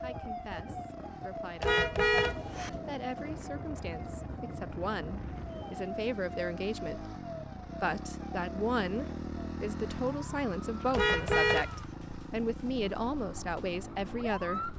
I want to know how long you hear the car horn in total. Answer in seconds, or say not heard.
2 s.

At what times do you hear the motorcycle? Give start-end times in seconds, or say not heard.
0.0-14.7.